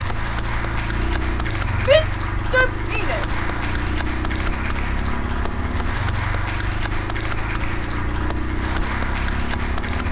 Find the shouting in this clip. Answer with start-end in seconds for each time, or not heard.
1.8-3.2.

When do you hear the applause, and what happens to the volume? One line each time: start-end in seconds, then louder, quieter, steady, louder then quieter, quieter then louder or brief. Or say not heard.
0.0-10.0 steady.